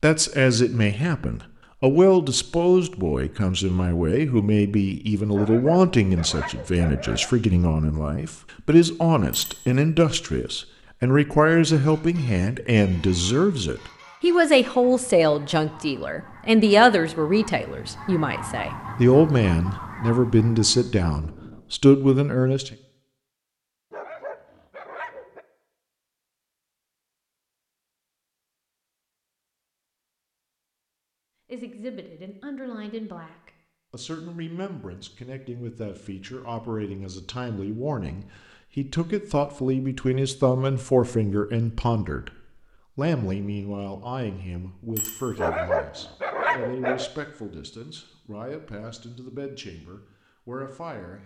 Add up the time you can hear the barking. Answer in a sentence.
The barking can be heard for 5 seconds in total.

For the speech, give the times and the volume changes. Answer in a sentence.
You can hear the speech from 0.0 to 22.8 s, at a steady volume; and from 31.5 to 51.2 s, getting louder then quieter.